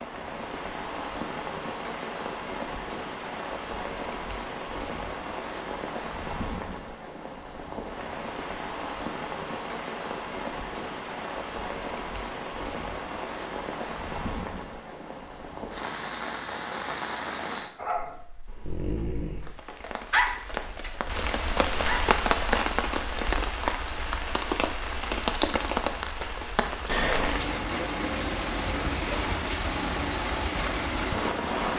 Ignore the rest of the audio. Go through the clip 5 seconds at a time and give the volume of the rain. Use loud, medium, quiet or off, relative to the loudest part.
medium, medium, medium, medium, loud, loud, loud.